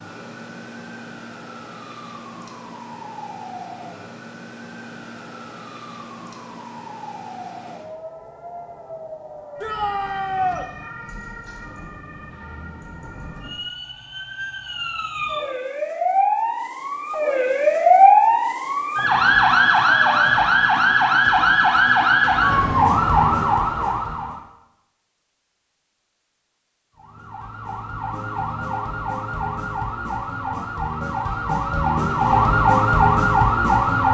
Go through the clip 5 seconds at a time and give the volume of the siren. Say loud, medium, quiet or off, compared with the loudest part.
quiet, quiet, quiet, loud, loud, quiet, loud.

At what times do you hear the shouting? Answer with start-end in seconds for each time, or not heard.
9.6-10.7.